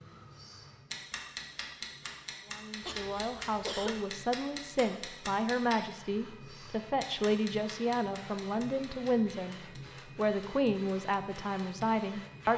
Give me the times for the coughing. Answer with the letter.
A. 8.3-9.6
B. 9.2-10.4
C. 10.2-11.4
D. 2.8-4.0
D.